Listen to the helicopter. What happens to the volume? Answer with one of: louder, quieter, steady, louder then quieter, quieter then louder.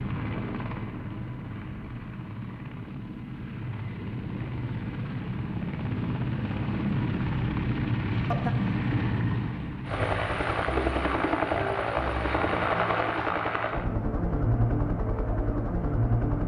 louder.